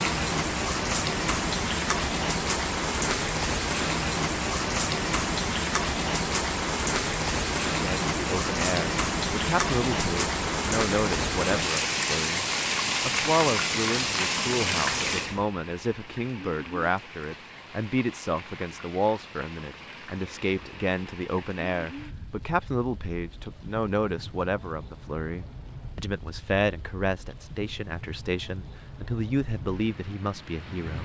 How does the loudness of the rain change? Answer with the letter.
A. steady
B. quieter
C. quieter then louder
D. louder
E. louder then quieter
B.